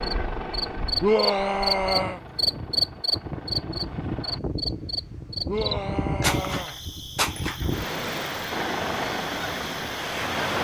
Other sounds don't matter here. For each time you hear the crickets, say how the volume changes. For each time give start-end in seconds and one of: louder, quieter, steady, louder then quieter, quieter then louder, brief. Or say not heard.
0.0-10.6 quieter.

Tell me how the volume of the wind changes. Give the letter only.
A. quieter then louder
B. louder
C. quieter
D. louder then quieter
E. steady
B.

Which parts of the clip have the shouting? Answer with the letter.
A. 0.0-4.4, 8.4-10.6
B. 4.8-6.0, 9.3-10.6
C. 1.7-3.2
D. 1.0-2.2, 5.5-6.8
D.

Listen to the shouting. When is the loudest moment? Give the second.
1 s.